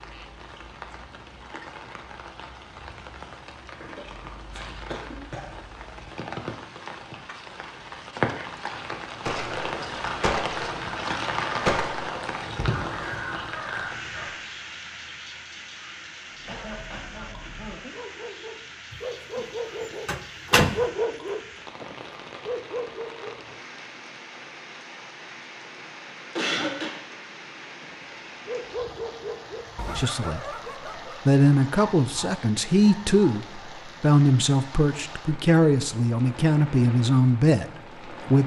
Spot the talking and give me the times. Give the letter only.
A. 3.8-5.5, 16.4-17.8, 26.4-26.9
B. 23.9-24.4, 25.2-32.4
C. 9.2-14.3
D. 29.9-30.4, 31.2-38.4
D.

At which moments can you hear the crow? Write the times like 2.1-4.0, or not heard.
9.2-14.3.